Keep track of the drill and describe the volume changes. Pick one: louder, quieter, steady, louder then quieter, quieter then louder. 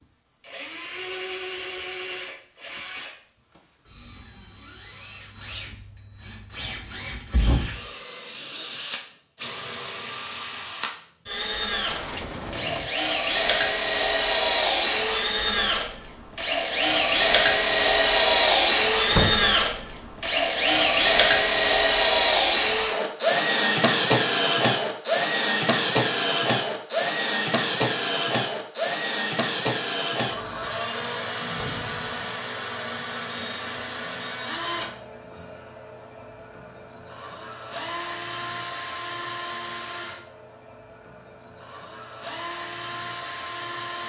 louder then quieter.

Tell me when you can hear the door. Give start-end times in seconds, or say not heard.
11.8-12.9, 19.1-19.6, 31.4-32.1.